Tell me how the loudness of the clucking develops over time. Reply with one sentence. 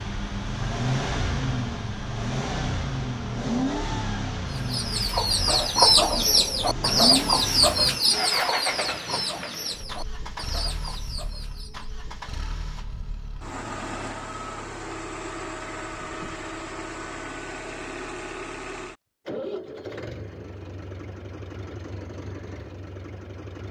The volume of the clucking goes down.